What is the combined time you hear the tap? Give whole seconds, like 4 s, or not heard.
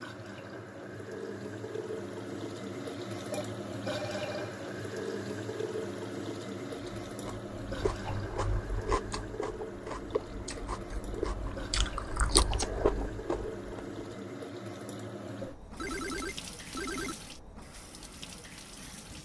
19 s.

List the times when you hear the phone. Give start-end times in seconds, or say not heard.
3.3-4.6, 15.8-17.1.